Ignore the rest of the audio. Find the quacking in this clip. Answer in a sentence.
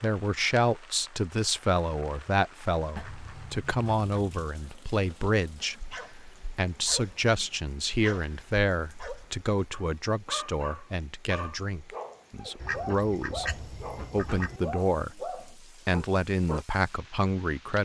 You can hear the quacking from 3.0 to 4.4 s and from 12.6 to 14.6 s.